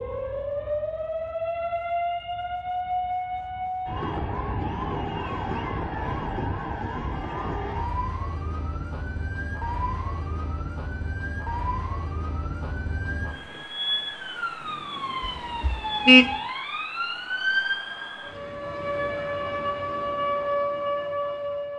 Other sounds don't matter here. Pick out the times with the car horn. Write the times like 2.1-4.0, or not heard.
15.2-16.4.